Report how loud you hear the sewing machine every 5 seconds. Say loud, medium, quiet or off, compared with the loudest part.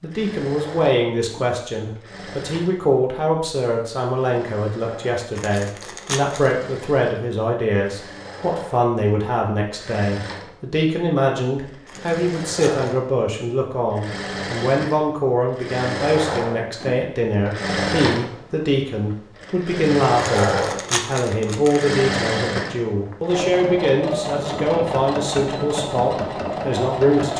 quiet, quiet, medium, loud, loud, loud.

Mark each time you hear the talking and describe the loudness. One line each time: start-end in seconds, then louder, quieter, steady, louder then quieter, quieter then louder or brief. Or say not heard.
0.0-27.3 steady.